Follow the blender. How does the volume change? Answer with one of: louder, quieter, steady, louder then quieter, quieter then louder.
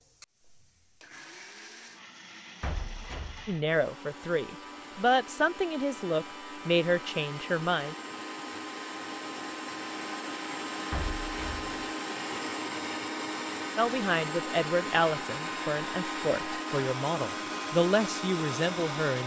louder.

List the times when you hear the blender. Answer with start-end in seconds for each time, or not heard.
0.0-19.2.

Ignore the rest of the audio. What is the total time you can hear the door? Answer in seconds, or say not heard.
2 s.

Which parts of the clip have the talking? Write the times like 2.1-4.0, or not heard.
3.5-8.0, 13.8-19.2.